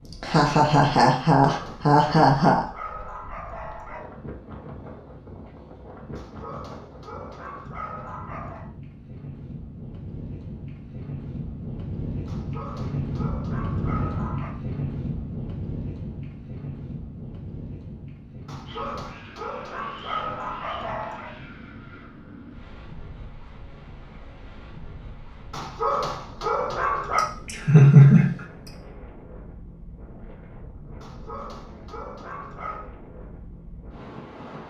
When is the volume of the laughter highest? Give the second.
28 s.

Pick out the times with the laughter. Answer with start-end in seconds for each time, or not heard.
0.2-2.6, 27.1-28.7.